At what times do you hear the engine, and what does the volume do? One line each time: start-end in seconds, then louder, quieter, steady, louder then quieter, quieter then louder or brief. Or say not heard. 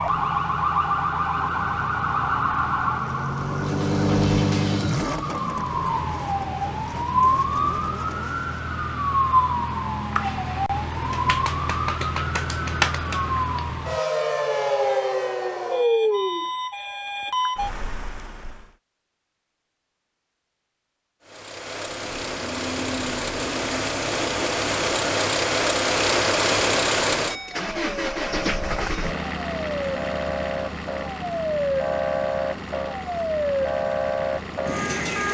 0.0-8.8 louder then quieter
21.2-35.3 louder then quieter.